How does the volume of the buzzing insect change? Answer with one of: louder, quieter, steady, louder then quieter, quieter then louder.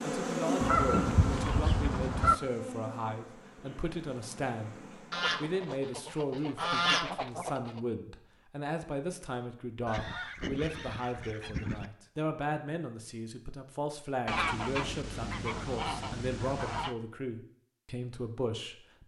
quieter.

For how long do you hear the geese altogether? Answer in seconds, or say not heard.
9 s.